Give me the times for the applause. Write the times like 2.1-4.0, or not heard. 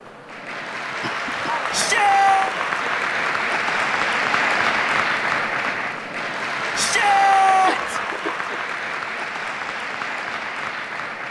0.0-11.2.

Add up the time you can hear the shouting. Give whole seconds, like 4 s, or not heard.
2 s.